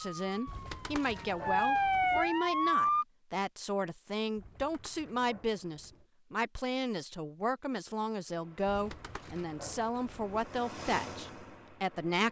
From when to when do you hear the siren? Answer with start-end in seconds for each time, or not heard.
0.0-3.0.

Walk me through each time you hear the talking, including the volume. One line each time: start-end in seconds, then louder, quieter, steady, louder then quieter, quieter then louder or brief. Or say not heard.
0.0-12.2 steady.